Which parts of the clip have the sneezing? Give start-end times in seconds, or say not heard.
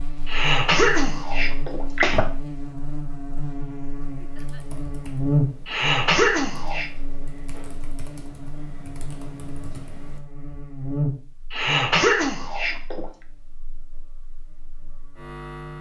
0.2-2.2, 5.7-6.8, 11.5-13.1.